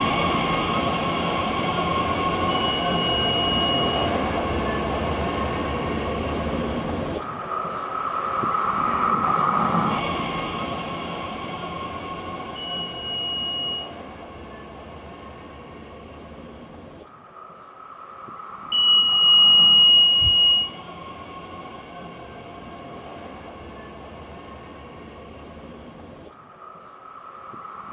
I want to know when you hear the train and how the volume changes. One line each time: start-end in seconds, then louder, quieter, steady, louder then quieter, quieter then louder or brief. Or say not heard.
0.0-27.8 quieter.